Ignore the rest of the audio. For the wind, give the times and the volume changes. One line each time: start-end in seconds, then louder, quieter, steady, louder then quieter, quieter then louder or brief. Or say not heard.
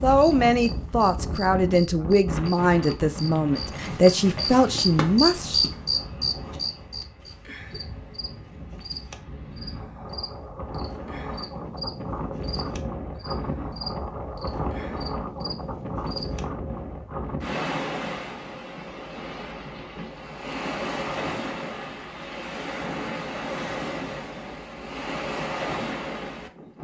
0.0-26.7 quieter then louder.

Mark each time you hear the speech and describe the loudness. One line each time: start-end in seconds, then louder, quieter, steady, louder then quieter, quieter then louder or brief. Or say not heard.
0.0-5.6 steady.